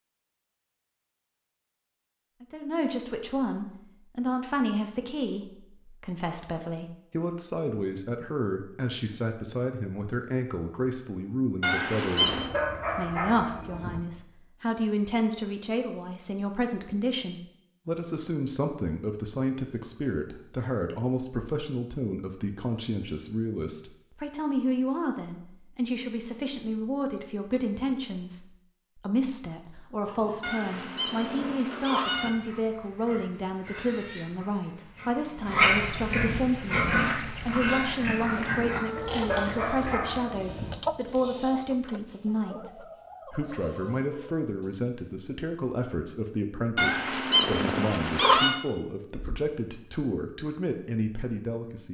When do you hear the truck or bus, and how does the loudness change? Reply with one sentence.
The truck or bus can't be heard in this clip.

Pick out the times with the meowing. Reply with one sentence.
You can hear the meowing from 11.6 to 12.5 s, from 30.4 to 32.3 s and from 46.8 to 48.6 s.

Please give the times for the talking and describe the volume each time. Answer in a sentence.
The talking can be heard from 2.4 to 51.8 s, at a steady volume.